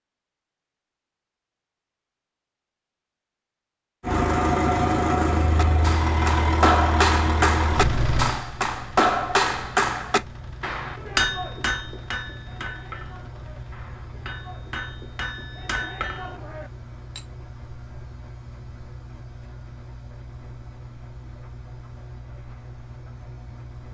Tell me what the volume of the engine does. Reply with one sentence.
The loudness of the engine goes down.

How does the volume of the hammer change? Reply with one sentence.
The volume of the hammer goes down, then up.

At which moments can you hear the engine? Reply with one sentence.
The engine can be heard from 4.0 to 23.8 s.